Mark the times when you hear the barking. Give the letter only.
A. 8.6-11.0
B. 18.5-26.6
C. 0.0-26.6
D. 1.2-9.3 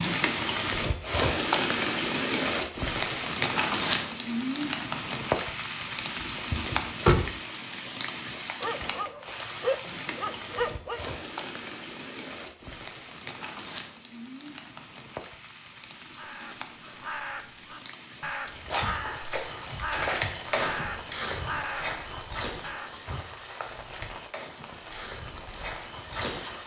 A.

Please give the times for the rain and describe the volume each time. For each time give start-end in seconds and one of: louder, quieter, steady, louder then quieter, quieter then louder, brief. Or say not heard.
0.0-26.6 quieter.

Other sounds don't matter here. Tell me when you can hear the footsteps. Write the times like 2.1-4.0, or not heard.
18.5-26.6.